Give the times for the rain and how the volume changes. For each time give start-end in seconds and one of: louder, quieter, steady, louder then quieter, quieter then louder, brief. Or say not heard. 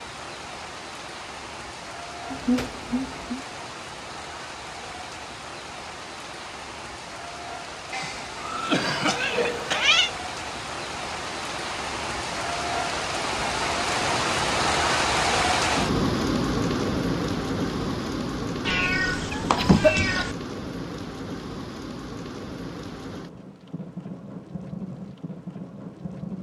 0.0-26.3 louder then quieter.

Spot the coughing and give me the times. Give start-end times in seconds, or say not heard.
7.9-10.1, 19.6-20.2.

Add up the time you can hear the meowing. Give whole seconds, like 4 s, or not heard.
4 s.